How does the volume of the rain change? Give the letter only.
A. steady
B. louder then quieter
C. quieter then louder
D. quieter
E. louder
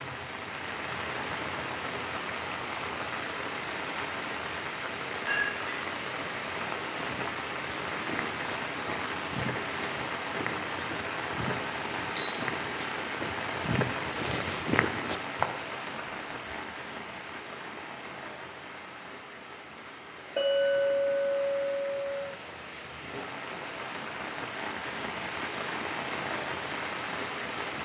C.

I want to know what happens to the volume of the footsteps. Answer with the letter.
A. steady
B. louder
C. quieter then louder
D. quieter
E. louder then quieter
B.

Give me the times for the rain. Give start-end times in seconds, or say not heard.
0.0-27.8.